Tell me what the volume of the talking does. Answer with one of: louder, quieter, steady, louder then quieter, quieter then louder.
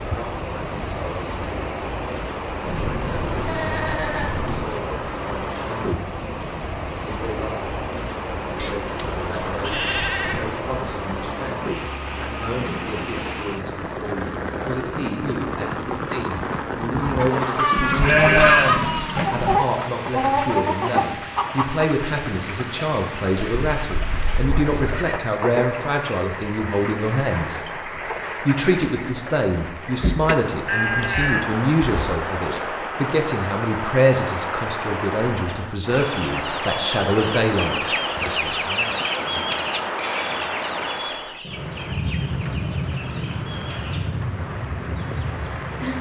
louder.